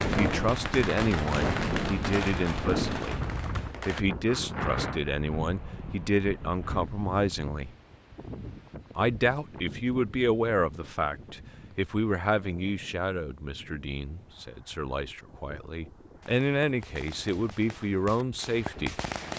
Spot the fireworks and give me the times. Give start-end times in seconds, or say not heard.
0.0-4.0, 16.2-19.3.